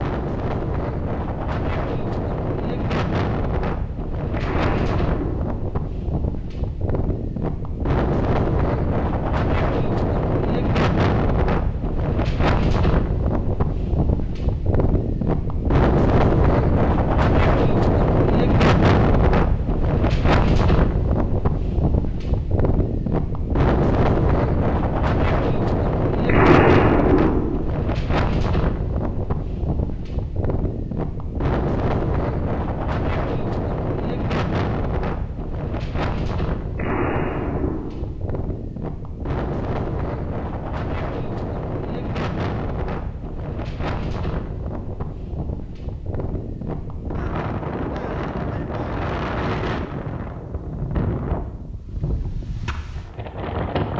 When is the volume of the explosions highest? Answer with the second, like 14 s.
27 s.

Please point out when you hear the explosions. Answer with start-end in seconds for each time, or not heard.
4.3-5.6, 26.2-27.6, 36.8-38.1.